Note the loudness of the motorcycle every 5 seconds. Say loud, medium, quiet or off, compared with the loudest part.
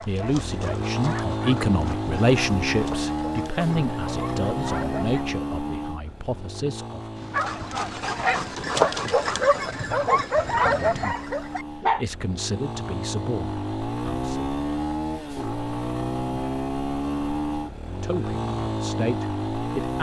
loud, medium, loud, loud.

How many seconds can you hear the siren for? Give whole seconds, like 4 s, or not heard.
not heard.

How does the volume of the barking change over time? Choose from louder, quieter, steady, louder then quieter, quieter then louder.
louder.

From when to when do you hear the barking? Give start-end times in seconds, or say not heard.
0.0-5.2, 7.3-12.1.